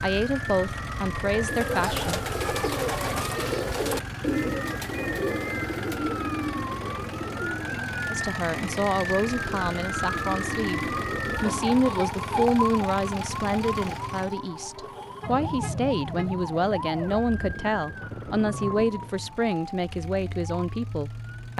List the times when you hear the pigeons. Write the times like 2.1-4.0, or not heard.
1.4-11.4.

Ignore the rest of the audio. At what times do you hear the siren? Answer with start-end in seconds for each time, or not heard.
0.0-21.5.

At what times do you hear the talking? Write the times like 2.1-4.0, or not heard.
0.0-2.2, 8.1-21.5.